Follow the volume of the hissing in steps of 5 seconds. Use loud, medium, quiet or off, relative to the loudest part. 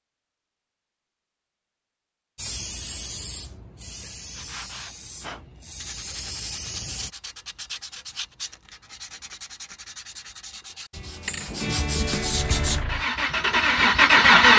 loud, loud, off.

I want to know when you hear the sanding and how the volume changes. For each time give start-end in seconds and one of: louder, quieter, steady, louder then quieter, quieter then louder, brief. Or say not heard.
4.3-12.8 louder.